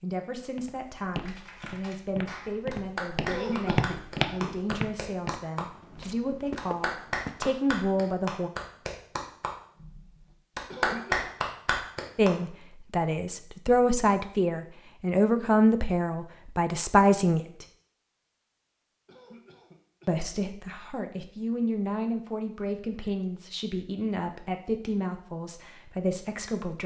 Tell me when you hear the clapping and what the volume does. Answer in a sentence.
The clapping can be heard from 1.2 to 12.3 s, getting louder.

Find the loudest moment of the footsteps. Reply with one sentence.
The volume of the footsteps peaks at 4 seconds.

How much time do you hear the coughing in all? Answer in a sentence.
The coughing can be heard for 3 seconds in total.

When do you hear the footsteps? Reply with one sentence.
You can hear the footsteps from 0.6 to 7.6 s.